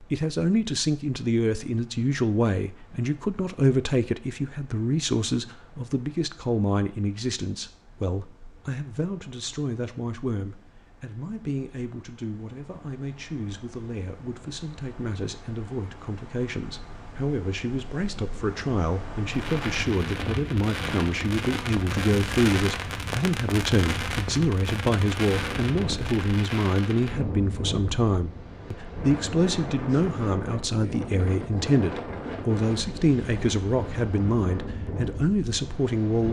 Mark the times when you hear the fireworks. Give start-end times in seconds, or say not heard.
19.3-27.1.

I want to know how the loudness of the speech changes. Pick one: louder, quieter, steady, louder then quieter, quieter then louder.
quieter then louder.